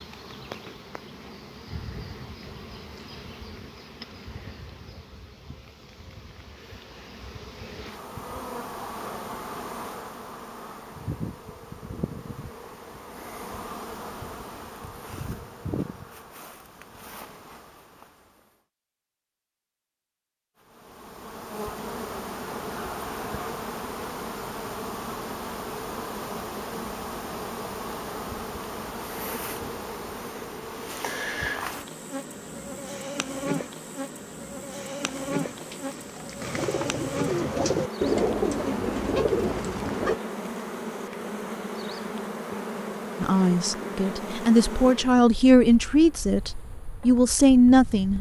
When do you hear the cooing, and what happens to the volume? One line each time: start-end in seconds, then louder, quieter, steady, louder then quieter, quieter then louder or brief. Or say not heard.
35.0-40.1 louder.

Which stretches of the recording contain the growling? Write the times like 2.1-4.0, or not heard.
22.5-23.6.